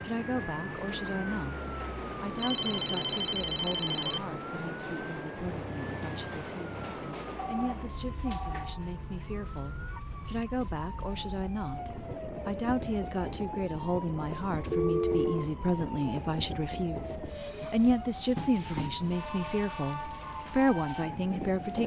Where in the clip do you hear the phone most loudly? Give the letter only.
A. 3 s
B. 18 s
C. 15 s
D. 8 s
C.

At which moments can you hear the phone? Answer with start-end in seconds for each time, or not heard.
2.4-4.2, 7.3-8.8, 14.7-15.5.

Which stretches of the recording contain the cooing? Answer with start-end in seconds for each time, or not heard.
not heard.